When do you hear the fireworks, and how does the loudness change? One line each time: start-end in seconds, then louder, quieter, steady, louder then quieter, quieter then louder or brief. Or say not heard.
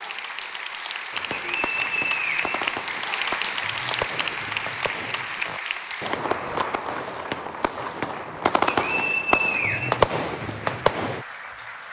1.1-11.2 louder.